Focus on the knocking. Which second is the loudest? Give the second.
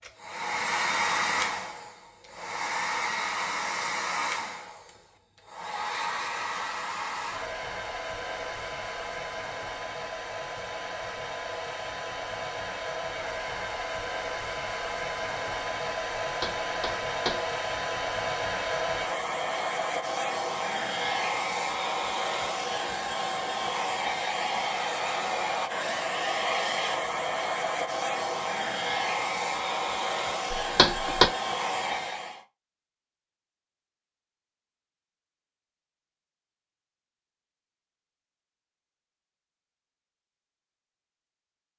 31 s.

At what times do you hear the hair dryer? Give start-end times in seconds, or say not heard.
0.0-32.4.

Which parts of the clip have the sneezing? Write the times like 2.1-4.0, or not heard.
not heard.